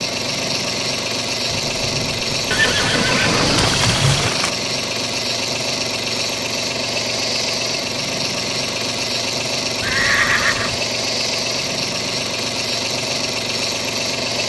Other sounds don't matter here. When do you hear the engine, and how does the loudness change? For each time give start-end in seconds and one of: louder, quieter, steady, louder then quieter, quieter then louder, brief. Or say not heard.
0.0-14.4 steady.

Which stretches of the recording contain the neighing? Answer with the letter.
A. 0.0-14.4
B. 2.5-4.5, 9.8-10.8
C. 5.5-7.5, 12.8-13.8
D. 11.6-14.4
B.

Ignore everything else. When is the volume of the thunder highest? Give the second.
4 s.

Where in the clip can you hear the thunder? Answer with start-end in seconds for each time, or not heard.
1.4-4.3.